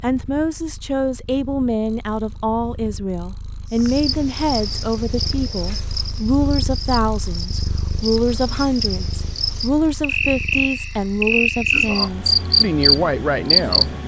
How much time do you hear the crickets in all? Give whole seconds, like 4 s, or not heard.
10 s.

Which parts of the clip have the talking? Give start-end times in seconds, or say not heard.
0.0-13.9.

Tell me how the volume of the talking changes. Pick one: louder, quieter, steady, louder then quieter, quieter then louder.
steady.